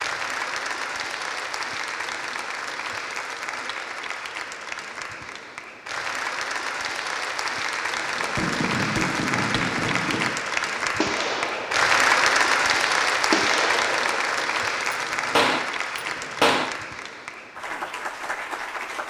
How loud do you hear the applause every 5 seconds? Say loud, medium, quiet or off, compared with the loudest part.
medium, medium, loud, medium.